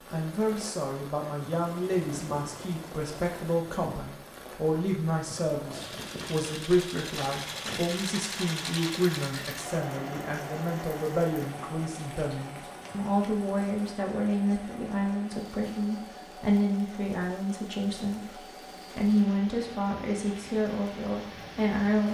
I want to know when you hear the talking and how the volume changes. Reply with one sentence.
You can hear the talking from 0.1 to 22.1 s, at a steady volume.